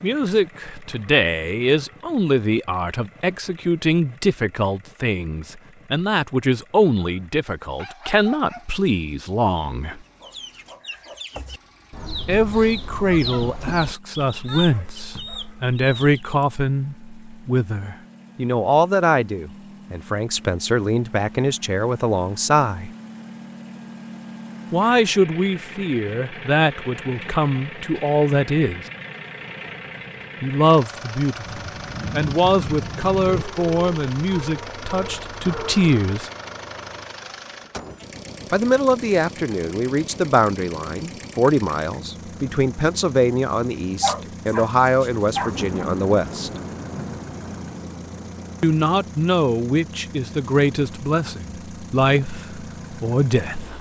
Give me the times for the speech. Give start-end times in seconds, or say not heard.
0.0-10.0, 12.2-22.9, 24.7-28.9, 30.4-36.3, 38.5-46.5, 48.6-53.7.